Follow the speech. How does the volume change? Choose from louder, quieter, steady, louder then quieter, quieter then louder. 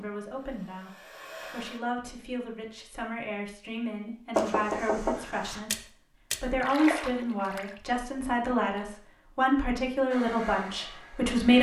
louder.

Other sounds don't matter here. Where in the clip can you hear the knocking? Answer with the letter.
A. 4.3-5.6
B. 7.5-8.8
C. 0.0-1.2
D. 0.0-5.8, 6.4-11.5
A.